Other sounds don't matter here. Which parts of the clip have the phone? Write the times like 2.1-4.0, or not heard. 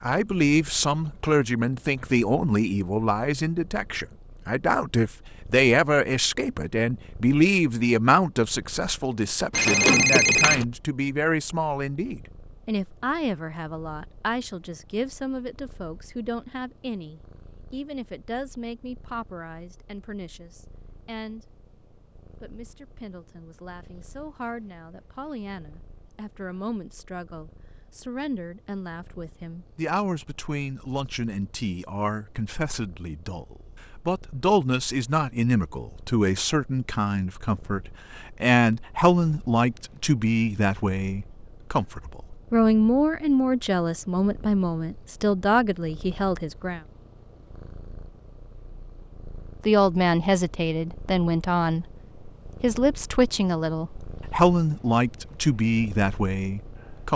9.5-10.7.